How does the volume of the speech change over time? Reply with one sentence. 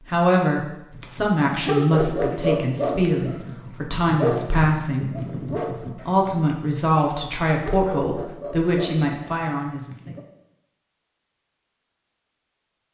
The loudness of the speech stays about the same.